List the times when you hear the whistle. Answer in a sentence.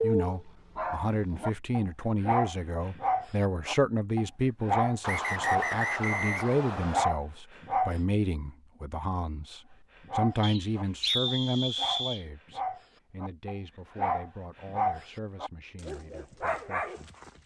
You can hear the whistle from 5.0 to 7.0 s and from 10.4 to 12.2 s.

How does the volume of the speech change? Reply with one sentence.
The loudness of the speech goes down.